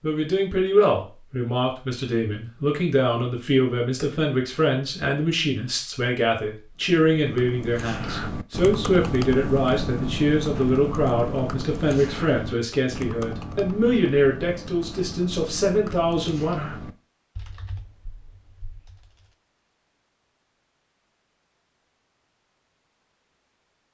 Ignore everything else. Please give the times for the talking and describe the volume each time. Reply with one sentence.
The talking can be heard from 0.0 to 16.7 s, at a steady volume.